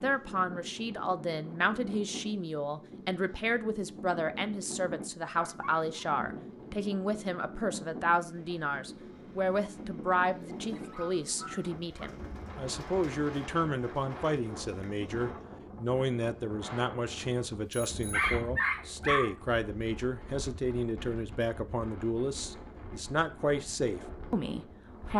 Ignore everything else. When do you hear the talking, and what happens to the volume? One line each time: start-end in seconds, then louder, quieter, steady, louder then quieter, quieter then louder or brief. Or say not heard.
0.0-25.1 steady.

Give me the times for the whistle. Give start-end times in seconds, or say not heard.
not heard.